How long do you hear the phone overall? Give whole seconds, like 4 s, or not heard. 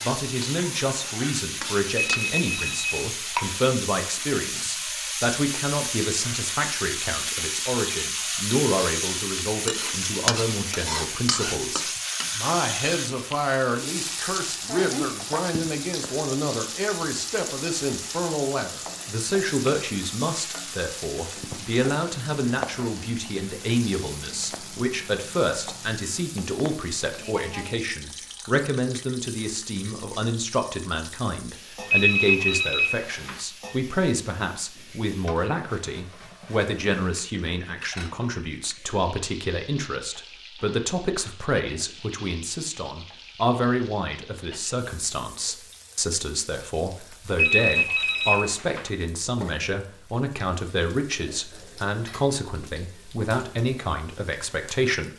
4 s.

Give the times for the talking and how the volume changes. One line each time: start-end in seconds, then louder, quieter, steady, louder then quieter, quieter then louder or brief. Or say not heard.
0.0-55.1 steady.